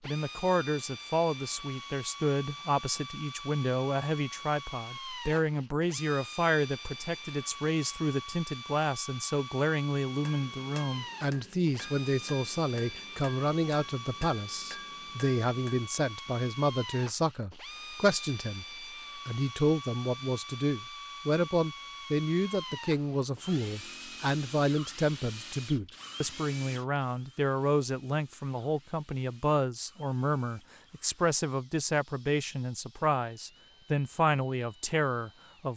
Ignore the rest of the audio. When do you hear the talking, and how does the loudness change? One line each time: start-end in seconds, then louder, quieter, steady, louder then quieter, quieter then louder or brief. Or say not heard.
0.1-35.7 steady.